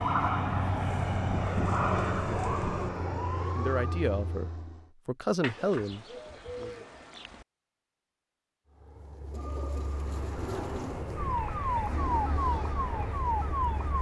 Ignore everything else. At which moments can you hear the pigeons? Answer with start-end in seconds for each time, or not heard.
0.9-2.9, 5.4-7.5, 9.3-11.1.